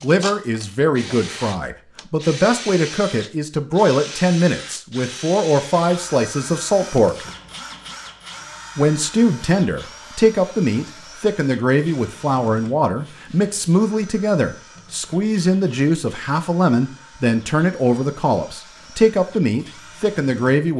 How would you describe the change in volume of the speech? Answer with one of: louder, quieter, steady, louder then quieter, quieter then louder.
steady.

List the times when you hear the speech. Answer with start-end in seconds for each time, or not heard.
0.0-7.2, 8.8-20.7.